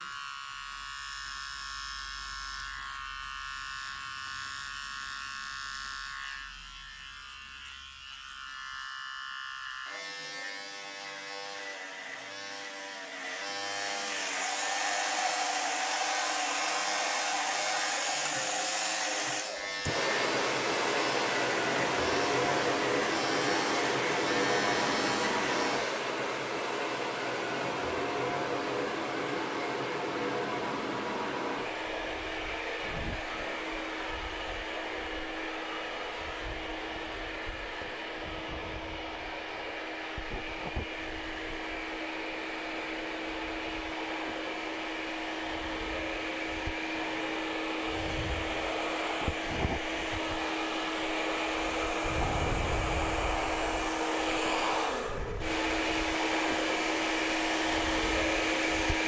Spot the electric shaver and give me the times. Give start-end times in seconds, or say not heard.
0.0-26.1.